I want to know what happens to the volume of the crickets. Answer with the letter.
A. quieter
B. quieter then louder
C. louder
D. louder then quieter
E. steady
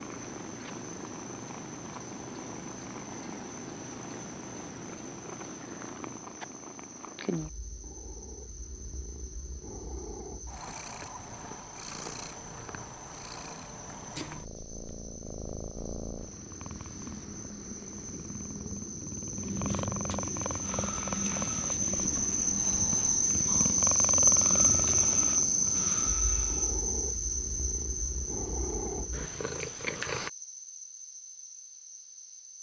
D.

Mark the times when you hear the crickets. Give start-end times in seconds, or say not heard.
0.0-32.5.